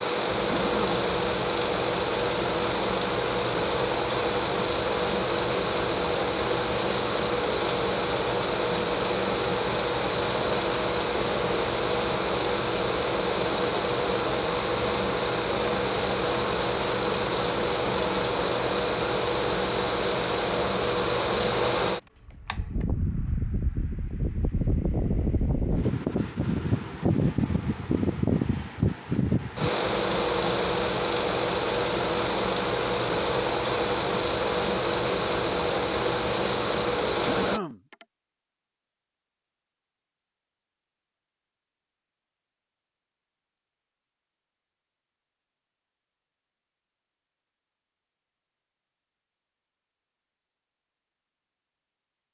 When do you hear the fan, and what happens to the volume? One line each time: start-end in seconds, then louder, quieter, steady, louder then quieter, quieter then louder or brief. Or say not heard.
0.0-37.6 steady.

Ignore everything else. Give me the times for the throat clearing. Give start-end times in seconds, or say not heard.
0.5-1.0, 37.2-38.0.